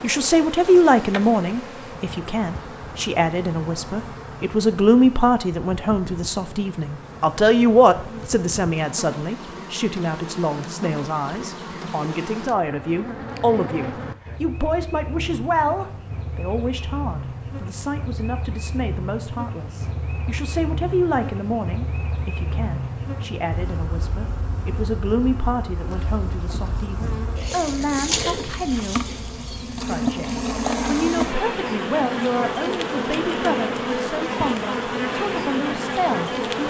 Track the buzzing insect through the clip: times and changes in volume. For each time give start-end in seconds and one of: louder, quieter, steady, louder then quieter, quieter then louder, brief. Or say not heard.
0.0-36.6 louder.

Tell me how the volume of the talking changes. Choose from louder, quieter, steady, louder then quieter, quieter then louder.
quieter.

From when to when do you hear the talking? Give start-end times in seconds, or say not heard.
0.0-29.0, 29.8-36.6.